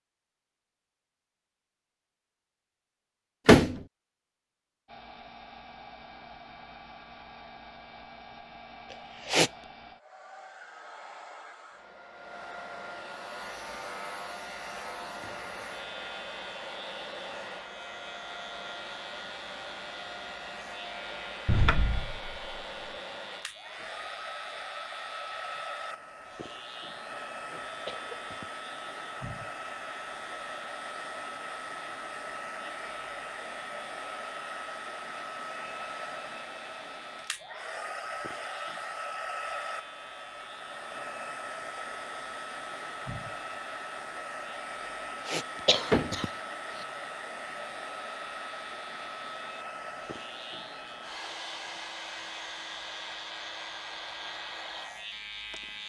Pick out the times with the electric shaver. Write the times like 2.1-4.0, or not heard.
13.2-55.8.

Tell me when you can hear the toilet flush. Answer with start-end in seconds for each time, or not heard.
not heard.